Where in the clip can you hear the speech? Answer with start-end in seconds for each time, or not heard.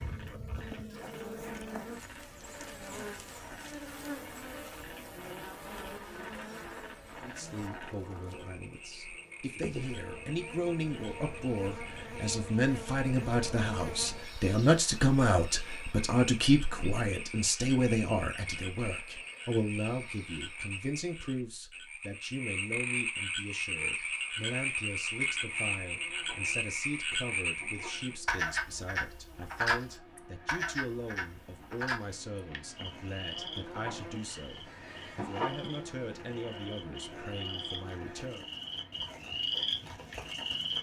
7.2-38.5.